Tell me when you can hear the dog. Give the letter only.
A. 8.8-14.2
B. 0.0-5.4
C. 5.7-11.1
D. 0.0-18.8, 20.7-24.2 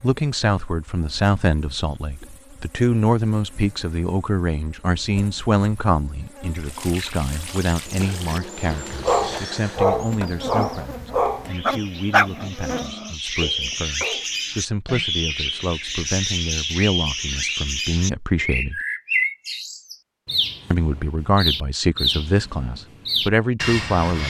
A.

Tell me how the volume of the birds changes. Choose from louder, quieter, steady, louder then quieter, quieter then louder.
louder.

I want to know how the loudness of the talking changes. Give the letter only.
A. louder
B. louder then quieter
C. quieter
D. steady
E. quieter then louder
E.